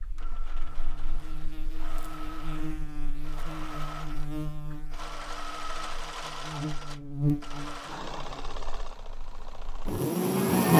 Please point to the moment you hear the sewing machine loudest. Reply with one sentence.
The loudest moment of the sewing machine is at 6 seconds.